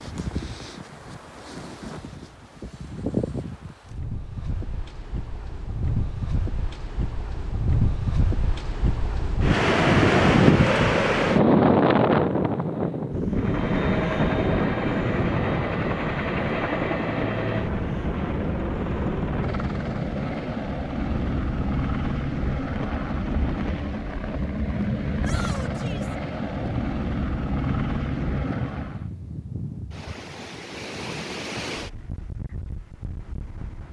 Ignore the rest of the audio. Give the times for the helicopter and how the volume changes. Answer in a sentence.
The helicopter can be heard from 13.3 to 29.1 s, at a steady volume.